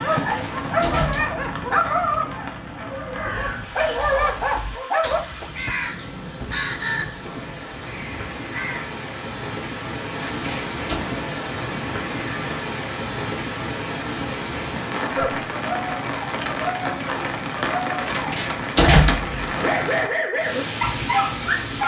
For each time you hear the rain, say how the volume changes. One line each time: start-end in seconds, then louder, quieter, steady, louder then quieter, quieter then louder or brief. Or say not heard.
0.0-21.8 louder.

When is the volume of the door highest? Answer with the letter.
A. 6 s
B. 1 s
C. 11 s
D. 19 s
D.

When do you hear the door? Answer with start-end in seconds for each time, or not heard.
0.2-1.4, 10.1-11.0, 18.0-19.5.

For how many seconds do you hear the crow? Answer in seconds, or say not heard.
6 s.